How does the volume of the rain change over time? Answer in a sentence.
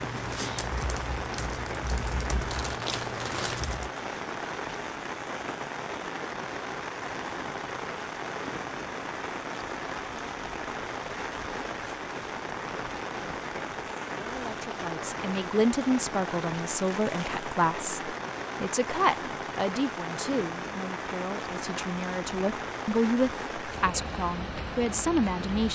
The volume of the rain stays about the same.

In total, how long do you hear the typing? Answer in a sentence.
You can hear the typing for 4 seconds altogether.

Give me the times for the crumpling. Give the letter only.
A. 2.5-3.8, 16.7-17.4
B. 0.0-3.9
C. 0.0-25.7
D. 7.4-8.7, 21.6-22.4
A.